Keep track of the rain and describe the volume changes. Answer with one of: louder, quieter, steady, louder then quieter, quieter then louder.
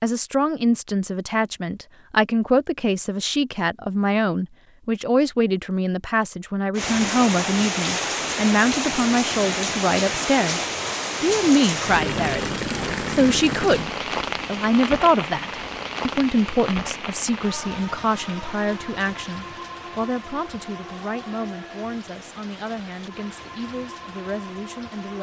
quieter.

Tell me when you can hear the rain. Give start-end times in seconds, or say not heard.
6.8-25.1.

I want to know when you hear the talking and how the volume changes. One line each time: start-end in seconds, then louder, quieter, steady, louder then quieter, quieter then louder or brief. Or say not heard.
0.0-25.1 quieter.